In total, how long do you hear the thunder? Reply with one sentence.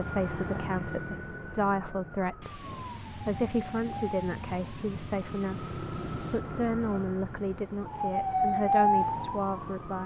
The thunder can be heard for 4 seconds in total.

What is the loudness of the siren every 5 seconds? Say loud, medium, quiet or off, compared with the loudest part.
medium, loud.